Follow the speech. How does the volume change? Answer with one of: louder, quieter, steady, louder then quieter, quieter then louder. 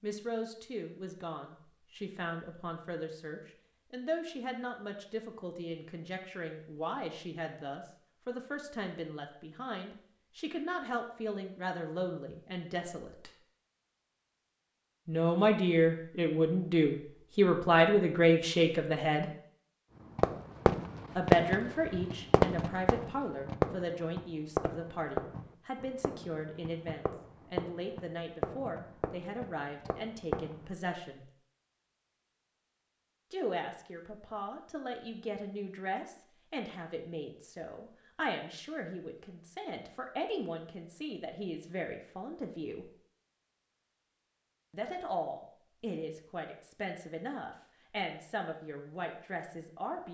louder then quieter.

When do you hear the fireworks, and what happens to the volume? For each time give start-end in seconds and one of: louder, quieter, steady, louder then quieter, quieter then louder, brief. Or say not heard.
20.1-30.7 quieter.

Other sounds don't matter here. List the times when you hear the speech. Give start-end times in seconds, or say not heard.
0.0-13.3, 15.1-19.2, 21.1-31.3, 33.3-42.9, 44.7-50.0.